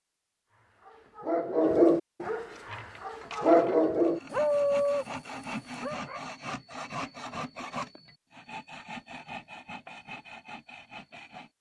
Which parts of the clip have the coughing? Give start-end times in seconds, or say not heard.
not heard.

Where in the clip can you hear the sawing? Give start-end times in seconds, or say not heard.
2.5-11.5.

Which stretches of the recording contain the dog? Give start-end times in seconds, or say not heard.
0.8-6.2.